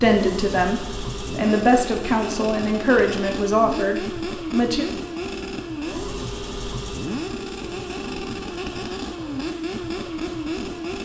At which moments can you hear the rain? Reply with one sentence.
The rain can't be heard in this clip.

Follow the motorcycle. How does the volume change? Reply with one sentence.
The volume of the motorcycle stays about the same.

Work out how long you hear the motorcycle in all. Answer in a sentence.
You can hear the motorcycle for 11 seconds altogether.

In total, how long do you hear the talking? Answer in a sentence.
You can hear the talking for 5 seconds altogether.